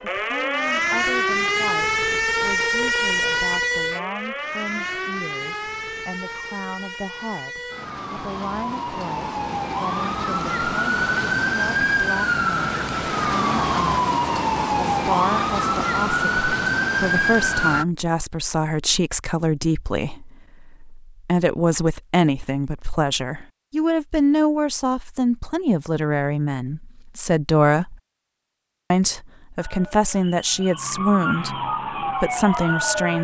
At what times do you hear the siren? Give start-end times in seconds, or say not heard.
0.0-17.9, 29.6-33.2.